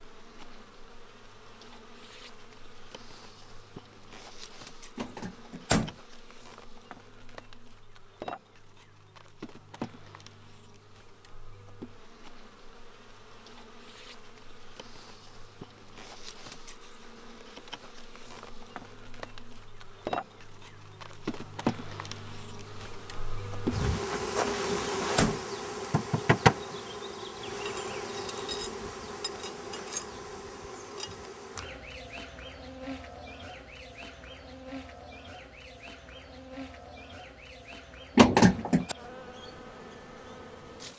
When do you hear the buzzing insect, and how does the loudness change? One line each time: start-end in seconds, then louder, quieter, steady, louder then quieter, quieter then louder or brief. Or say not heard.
0.0-40.9 louder then quieter.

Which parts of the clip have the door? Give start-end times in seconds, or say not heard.
5.0-6.0, 24.4-25.4, 38.1-39.0.